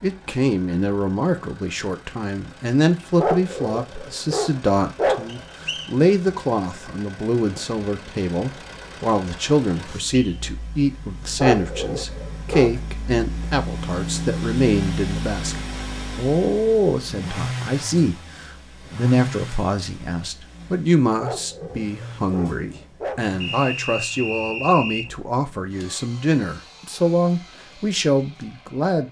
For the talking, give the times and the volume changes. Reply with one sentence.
The talking can be heard from 0.0 to 29.0 s, at a steady volume.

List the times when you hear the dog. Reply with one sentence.
The dog can be heard from 3.1 to 5.4 s, from 11.3 to 12.8 s and from 21.2 to 23.2 s.